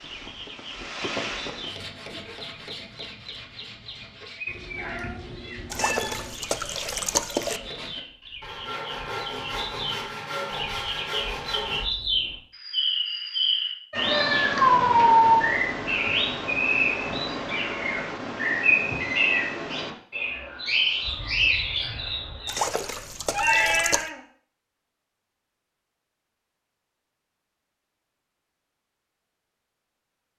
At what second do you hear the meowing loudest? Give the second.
15 s.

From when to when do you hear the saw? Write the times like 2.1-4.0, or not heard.
1.6-11.9.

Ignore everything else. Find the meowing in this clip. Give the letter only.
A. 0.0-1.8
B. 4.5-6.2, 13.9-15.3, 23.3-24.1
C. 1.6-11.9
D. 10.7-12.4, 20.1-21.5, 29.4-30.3
B.